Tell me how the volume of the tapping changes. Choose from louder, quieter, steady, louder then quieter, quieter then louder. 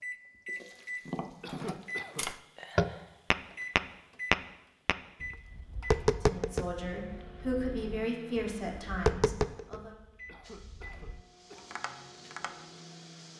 quieter then louder.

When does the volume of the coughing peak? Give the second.
2 s.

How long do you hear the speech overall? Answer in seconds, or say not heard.
4 s.